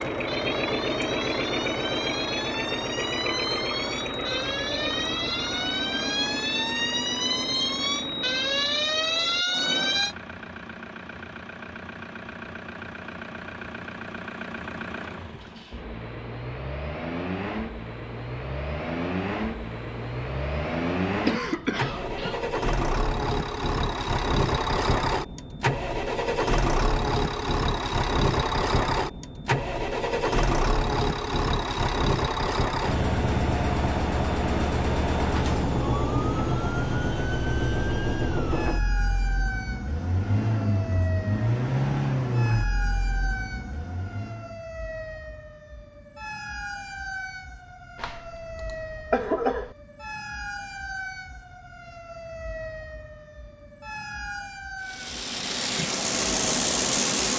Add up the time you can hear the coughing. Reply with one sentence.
You can hear the coughing for 3 seconds altogether.